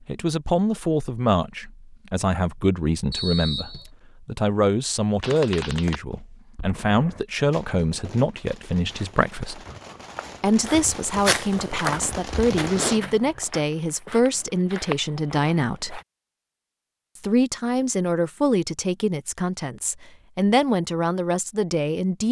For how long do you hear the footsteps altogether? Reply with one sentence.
You can hear the footsteps for 7 seconds altogether.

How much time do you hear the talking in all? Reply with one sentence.
You can hear the talking for 20 seconds altogether.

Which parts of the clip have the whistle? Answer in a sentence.
The whistle can be heard from 3.1 to 3.9 s.